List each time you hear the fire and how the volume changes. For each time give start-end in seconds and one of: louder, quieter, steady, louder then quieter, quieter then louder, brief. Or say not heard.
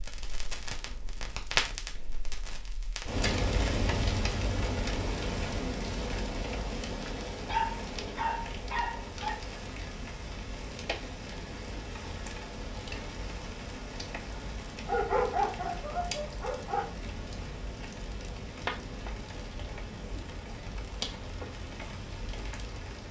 0.0-23.0 quieter.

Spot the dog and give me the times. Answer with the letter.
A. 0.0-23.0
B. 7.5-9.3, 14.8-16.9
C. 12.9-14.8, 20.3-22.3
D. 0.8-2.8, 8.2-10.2
B.